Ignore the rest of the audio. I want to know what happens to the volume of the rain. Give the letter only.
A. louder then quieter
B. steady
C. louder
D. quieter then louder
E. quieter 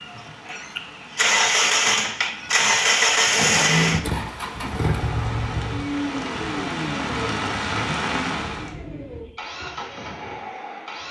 C.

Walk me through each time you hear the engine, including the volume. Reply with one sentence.
You can hear the engine from 0.0 to 11.0 s, getting quieter.